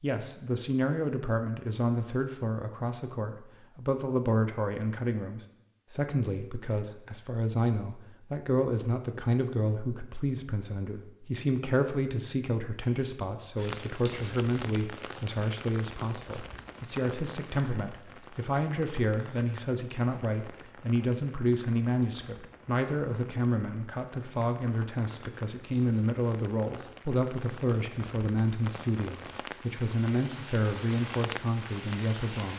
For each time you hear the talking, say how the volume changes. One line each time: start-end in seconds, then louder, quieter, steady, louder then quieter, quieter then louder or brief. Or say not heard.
0.0-32.5 steady.